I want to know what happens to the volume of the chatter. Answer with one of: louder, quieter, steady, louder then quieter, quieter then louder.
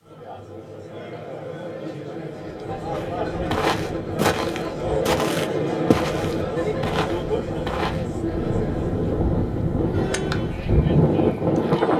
louder then quieter.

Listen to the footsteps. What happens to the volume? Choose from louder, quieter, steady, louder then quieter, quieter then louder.
quieter.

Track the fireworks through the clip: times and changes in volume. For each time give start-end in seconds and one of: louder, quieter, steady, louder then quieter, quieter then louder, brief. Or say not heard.
not heard.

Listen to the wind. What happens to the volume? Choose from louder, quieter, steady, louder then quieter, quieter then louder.
louder.